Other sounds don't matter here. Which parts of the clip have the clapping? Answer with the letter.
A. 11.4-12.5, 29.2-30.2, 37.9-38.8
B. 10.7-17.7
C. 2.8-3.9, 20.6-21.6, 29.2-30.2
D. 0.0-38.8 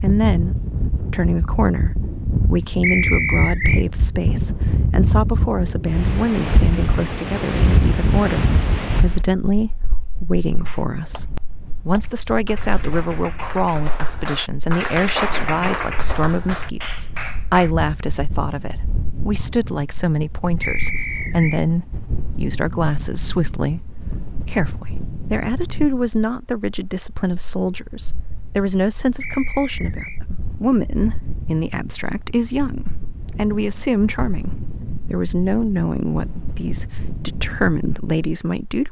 B.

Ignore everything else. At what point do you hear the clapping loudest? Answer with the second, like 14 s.
15 s.